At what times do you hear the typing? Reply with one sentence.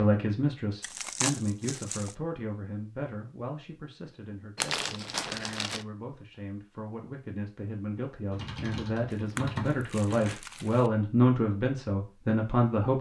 The typing can be heard from 8.3 to 10.3 s.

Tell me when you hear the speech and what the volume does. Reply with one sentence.
You can hear the speech from 0.0 to 12.9 s, getting quieter then louder.